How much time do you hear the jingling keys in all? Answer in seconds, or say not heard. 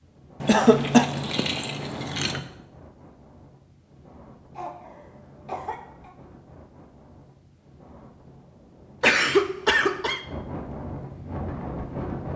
2 s.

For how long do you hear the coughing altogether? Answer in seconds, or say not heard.
3 s.